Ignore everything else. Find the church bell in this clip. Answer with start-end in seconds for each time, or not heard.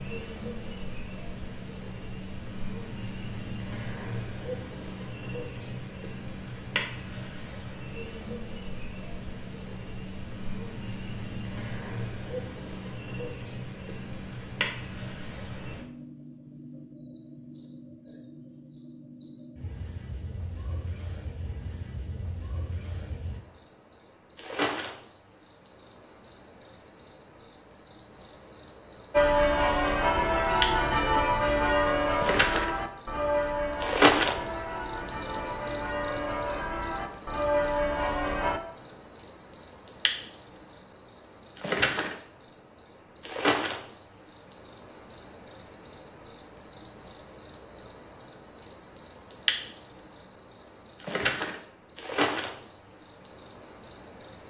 29.1-38.6.